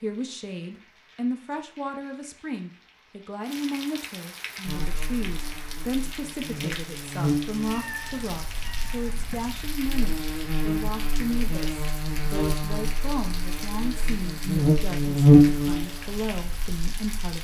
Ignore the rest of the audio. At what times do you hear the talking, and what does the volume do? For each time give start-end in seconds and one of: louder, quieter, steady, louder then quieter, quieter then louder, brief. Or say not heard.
0.0-17.4 steady.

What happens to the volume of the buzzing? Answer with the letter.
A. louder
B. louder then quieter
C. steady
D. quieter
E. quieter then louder
E.